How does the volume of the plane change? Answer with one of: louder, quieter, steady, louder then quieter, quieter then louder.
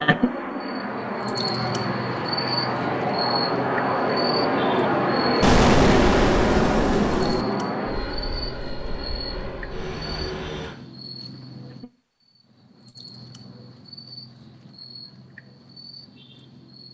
louder then quieter.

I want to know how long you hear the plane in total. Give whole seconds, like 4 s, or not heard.
11 s.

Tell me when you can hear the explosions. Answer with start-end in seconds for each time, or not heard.
5.4-7.5.